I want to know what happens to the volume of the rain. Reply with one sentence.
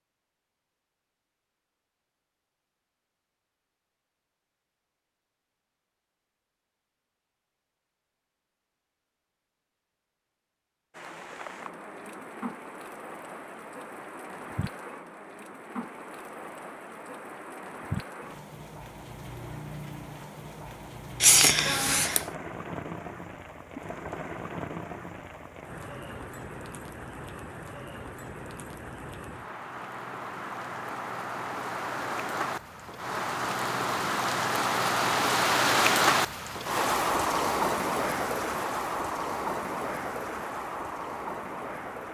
The volume of the rain goes up.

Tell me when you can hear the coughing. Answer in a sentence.
You can hear the coughing from 21.2 to 22.2 s.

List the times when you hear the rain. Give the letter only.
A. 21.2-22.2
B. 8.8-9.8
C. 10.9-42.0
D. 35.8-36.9
C.